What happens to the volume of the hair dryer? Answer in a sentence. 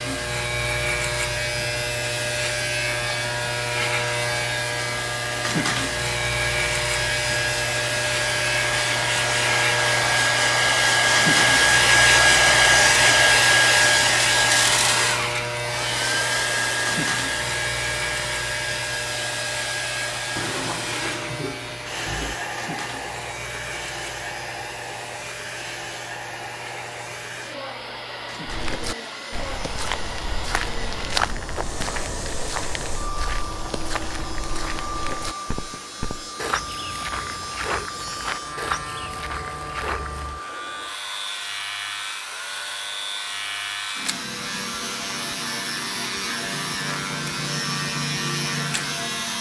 The volume of the hair dryer goes up, then down.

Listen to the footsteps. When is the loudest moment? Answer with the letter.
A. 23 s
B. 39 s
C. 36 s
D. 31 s
D.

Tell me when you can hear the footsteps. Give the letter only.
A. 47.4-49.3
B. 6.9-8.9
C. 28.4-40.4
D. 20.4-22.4
C.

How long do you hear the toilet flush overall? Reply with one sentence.
You can hear the toilet flush for 2 seconds altogether.